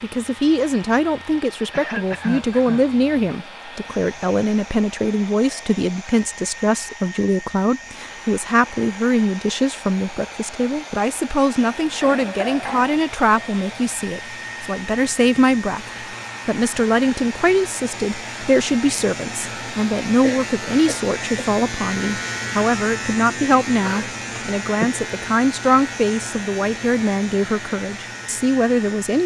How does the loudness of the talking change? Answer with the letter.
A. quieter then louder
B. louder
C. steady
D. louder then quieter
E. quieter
C.